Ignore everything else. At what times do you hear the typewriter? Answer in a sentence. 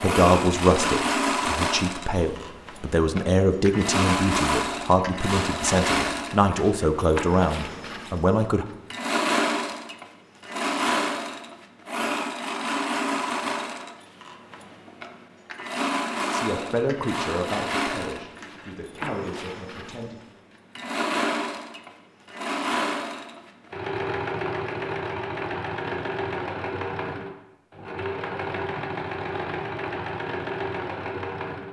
The typewriter can't be heard in this clip.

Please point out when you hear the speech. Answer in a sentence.
You can hear the speech from 0.0 to 8.7 s and from 16.3 to 20.2 s.